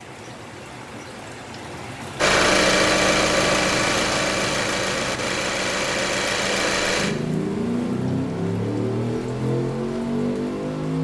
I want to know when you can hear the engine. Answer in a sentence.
The engine can be heard from 2.1 to 10.9 s.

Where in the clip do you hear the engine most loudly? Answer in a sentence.
The loudest moment of the engine is at 3 seconds.